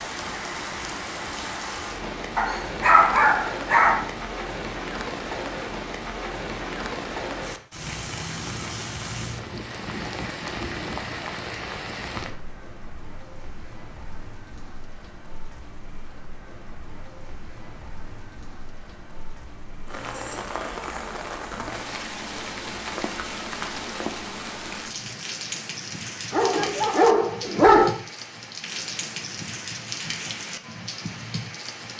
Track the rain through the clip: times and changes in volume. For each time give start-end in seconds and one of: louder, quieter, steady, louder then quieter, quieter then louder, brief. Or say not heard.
0.0-31.9 quieter then louder.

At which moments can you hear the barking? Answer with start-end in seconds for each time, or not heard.
2.4-4.0, 26.3-27.9.